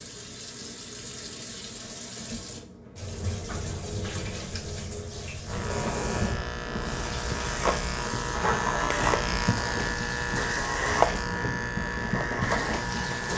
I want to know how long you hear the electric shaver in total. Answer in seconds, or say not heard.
8 s.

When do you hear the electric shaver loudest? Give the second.
11 s.